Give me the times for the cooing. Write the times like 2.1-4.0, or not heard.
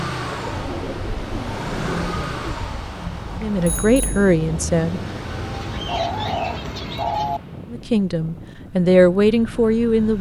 0.2-2.7, 5.5-7.4.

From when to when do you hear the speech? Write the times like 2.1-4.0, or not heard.
3.4-5.0, 7.7-10.1.